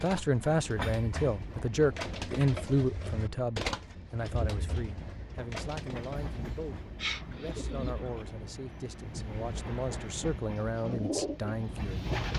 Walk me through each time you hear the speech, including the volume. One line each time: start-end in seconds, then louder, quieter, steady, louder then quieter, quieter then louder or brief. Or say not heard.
0.0-12.1 quieter then louder.